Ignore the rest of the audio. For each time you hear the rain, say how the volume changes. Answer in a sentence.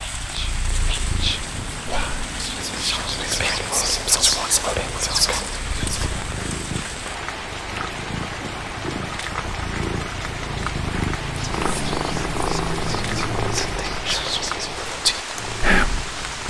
The rain can be heard from 0.0 to 16.4 s, at a steady volume.